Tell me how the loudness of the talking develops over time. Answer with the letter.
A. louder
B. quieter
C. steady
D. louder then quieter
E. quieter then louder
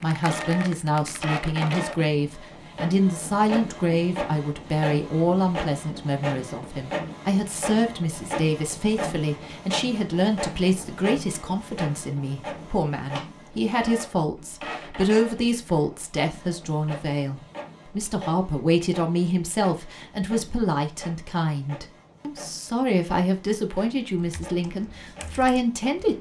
C.